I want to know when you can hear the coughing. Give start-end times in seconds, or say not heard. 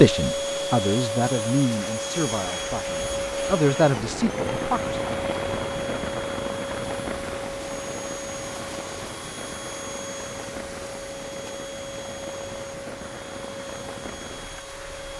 not heard.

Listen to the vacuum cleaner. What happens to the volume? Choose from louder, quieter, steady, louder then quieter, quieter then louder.
quieter.